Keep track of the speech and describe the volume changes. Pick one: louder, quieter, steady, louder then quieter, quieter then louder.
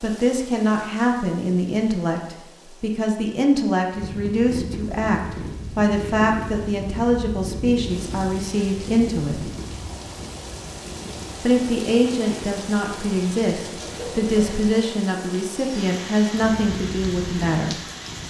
steady.